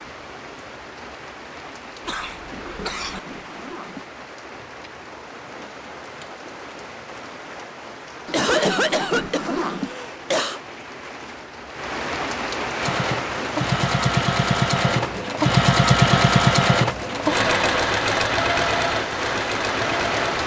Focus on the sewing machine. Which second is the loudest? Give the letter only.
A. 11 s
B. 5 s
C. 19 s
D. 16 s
D.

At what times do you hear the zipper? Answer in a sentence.
The zipper can be heard from 2.4 to 4.1 s, from 8.2 to 9.9 s and from 15.0 to 15.4 s.